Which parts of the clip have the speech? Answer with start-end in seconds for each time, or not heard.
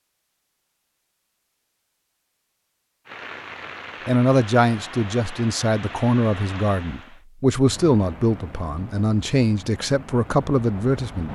4.0-11.3.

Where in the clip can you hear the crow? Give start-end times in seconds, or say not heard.
not heard.